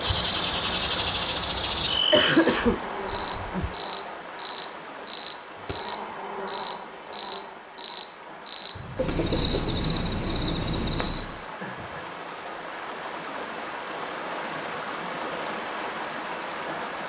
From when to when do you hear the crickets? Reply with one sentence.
You can hear the crickets from 0.0 to 11.4 s.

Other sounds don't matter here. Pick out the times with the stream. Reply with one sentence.
You can hear the stream from 0.0 to 17.0 s.